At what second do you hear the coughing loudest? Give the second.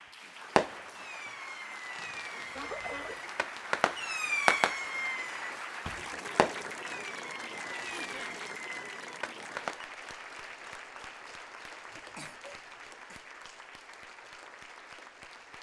3 s.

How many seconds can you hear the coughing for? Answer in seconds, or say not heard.
3 s.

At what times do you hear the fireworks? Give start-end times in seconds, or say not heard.
0.6-9.8.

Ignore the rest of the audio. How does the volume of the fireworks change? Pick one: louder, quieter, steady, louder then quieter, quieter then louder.
louder then quieter.